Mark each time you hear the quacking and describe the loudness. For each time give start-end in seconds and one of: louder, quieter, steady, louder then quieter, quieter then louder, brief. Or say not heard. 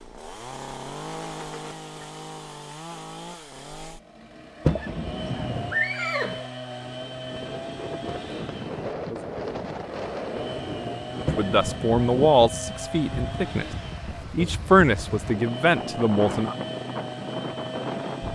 not heard.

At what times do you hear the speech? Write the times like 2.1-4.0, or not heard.
11.3-13.7, 14.3-16.6.